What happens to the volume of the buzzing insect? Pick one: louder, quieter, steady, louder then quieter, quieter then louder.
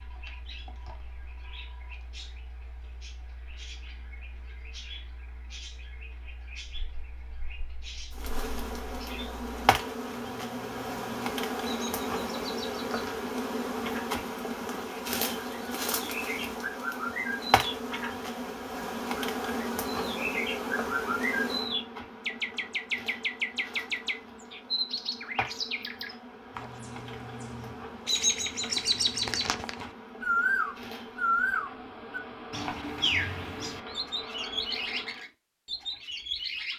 quieter.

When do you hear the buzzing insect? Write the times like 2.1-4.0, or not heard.
8.1-35.2.